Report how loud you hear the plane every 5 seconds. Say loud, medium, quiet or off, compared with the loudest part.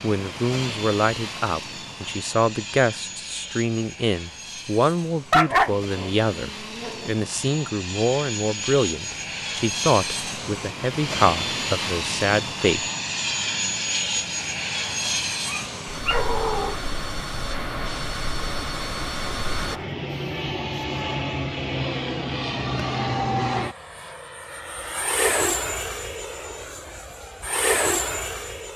medium, medium, loud, loud, loud, loud.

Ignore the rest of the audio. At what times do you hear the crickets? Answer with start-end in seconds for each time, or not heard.
not heard.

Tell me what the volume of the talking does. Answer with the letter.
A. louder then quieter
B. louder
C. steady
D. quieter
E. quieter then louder
C.